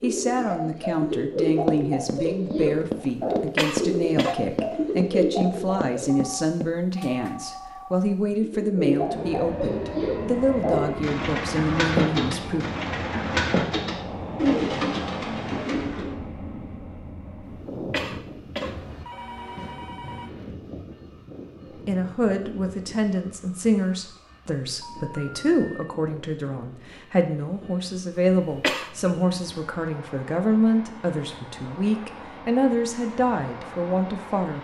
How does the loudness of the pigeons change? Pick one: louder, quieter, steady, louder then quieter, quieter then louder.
steady.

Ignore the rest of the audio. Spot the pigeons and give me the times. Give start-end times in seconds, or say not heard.
0.0-6.2, 8.4-16.1.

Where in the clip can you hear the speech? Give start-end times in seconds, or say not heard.
0.0-12.7, 21.9-34.5.